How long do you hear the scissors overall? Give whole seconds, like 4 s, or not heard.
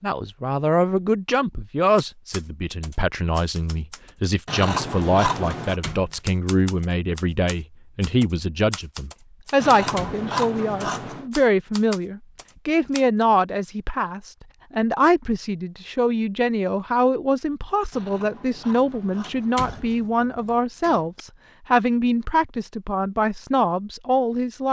5 s.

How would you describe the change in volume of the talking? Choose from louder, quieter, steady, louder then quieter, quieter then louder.
steady.